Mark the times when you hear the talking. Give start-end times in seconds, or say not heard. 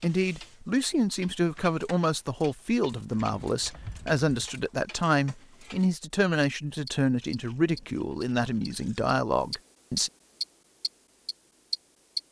0.0-10.1.